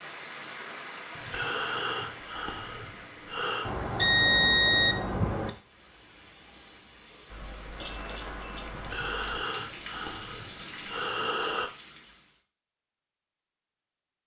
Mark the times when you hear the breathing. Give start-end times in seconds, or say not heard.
1.1-3.7, 8.7-11.7.